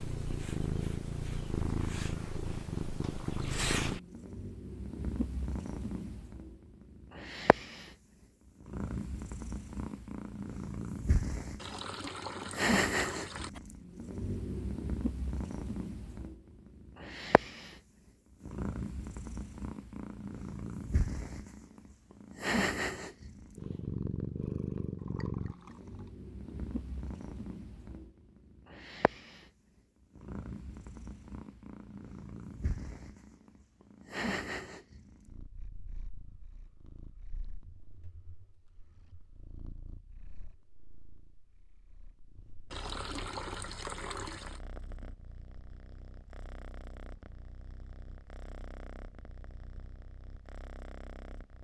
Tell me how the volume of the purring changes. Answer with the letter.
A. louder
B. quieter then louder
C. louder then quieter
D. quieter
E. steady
D.